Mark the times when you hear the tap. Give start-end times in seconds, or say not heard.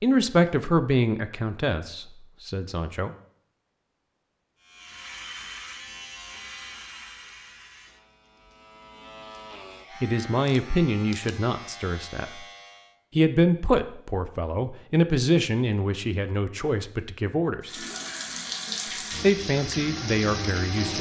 17.6-20.9.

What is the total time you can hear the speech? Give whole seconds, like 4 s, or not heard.
12 s.